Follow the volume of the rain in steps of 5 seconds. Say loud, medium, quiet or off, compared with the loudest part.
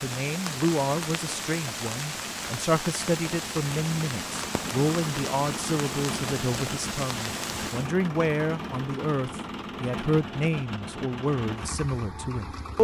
loud, loud, off.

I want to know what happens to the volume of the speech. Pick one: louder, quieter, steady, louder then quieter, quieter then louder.
steady.